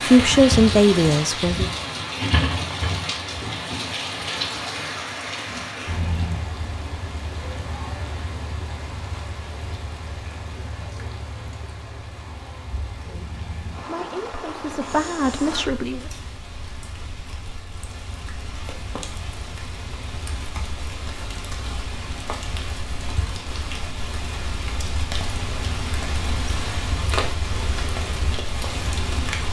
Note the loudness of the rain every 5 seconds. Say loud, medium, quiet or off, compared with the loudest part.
loud, medium, medium, medium, medium, loud.